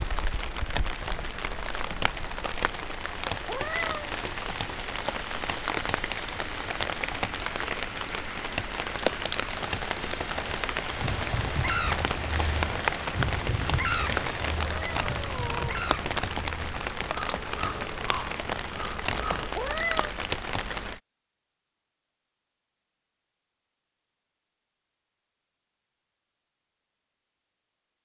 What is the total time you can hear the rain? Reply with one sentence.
You can hear the rain for 21 seconds altogether.